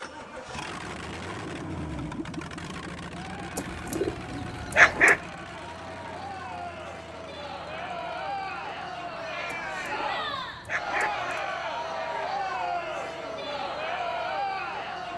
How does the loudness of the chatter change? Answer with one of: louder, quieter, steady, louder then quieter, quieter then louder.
louder.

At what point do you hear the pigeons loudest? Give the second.
5 s.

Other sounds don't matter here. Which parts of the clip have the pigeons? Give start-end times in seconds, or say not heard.
3.5-5.2, 9.5-11.4.